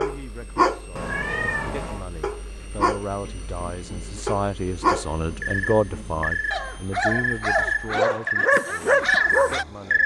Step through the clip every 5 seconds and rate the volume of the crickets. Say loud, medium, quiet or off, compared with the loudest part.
off, loud.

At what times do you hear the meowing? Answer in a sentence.
You can hear the meowing from 0.9 to 2.0 s.